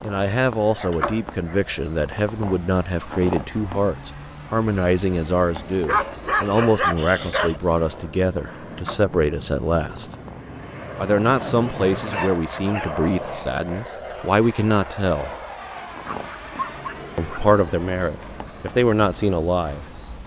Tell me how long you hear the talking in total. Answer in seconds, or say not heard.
17 s.